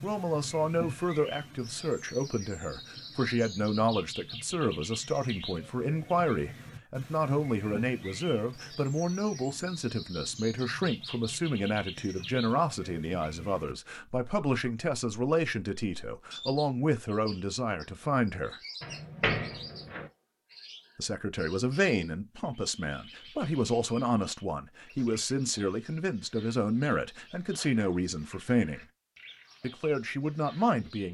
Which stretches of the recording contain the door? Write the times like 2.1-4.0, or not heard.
18.8-20.1.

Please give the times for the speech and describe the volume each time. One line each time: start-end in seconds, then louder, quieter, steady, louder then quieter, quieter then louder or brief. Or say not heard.
0.0-18.6 steady
20.9-28.9 steady
29.6-31.0 brief.